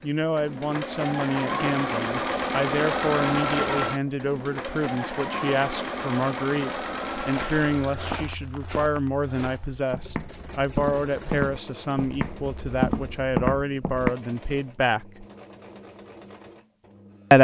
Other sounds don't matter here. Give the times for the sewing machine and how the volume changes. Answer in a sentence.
The sewing machine can be heard from 0.0 to 17.3 s, getting quieter.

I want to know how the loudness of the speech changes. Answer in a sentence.
The loudness of the speech stays about the same.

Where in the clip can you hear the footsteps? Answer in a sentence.
You can hear the footsteps from 7.2 to 14.2 s.